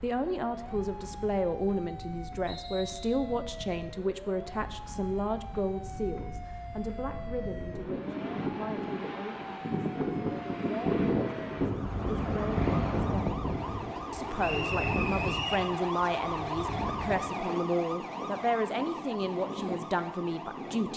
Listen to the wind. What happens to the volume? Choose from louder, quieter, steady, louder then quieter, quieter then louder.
louder then quieter.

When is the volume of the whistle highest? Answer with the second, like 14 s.
15 s.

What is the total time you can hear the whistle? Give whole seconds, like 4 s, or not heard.
2 s.